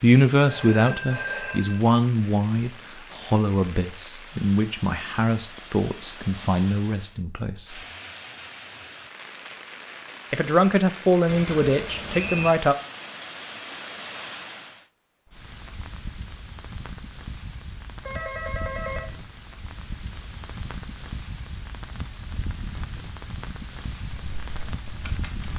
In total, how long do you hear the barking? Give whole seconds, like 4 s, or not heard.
not heard.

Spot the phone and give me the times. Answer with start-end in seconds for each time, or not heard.
0.5-1.8, 11.2-12.6, 18.1-19.1.